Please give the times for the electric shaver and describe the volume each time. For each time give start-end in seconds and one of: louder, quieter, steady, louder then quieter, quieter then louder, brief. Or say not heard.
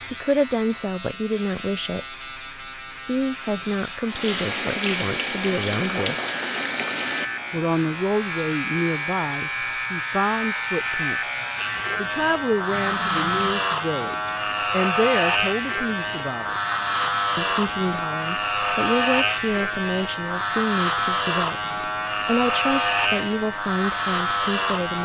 0.0-24.9 louder.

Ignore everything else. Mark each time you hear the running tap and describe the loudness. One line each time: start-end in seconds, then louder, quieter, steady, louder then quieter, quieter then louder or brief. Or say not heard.
4.0-13.6 quieter.